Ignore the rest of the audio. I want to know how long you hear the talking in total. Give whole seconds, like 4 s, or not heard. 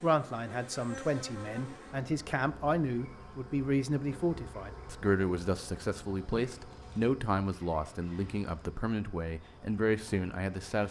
11 s.